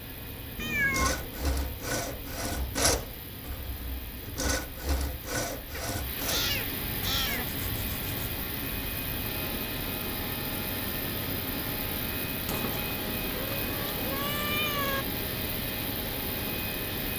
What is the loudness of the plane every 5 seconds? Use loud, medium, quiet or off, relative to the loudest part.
medium, loud, loud, loud.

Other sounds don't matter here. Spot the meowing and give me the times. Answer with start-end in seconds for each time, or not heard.
0.6-1.3, 5.7-7.5, 12.4-15.1.